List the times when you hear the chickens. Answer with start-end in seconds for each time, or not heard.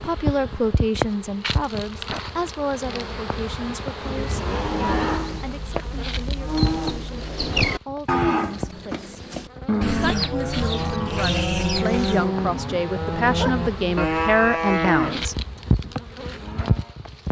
9.8-12.3.